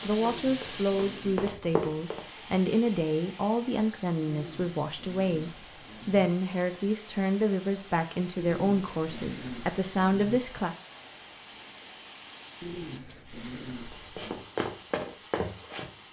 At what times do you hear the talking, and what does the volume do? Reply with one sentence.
The talking can be heard from 0.0 to 10.8 s, at a steady volume.